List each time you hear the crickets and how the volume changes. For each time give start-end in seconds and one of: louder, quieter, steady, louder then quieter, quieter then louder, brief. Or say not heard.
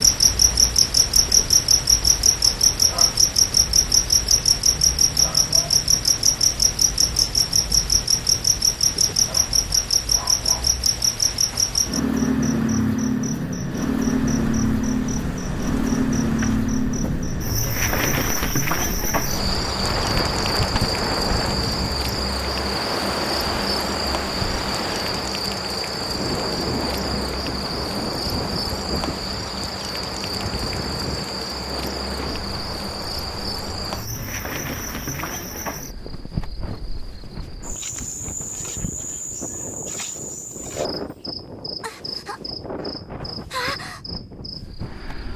0.0-45.3 quieter.